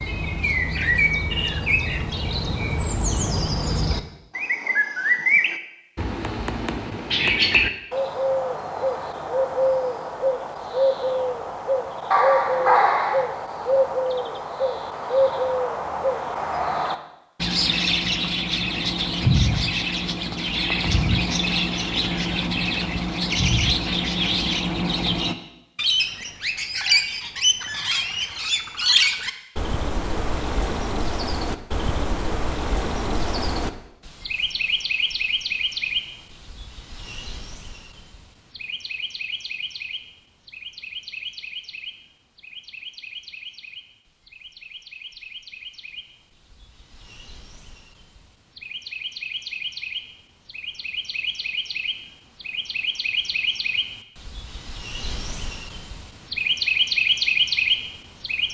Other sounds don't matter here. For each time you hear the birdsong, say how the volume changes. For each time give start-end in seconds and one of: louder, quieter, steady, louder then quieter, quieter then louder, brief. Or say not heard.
0.0-58.4 quieter then louder.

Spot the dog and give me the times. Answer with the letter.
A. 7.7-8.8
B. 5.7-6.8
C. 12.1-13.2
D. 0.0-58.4
C.